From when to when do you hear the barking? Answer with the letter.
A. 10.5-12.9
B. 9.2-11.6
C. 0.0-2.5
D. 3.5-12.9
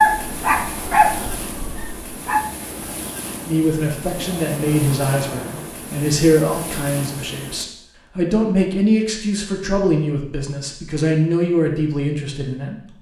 C.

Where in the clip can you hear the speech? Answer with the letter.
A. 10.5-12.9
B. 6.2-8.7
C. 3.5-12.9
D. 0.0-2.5
C.